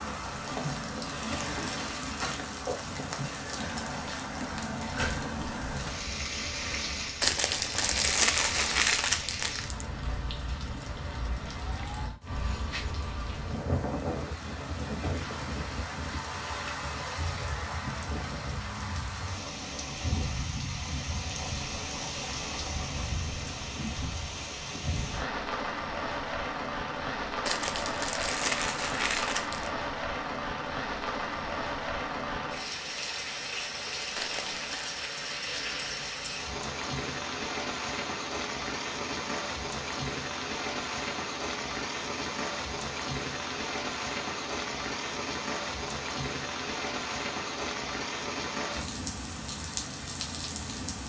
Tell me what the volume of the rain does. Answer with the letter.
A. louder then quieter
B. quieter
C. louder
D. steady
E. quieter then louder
D.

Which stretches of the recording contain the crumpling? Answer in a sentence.
You can hear the crumpling from 7.2 to 9.8 s, from 27.4 to 29.7 s and from 34.1 to 35.0 s.